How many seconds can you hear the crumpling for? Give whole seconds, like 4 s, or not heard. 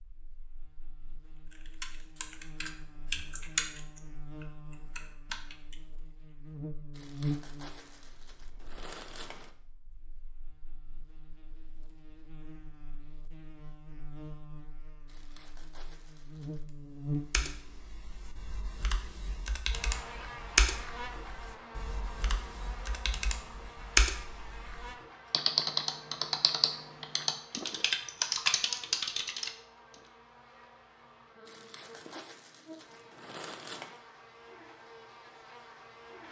7 s.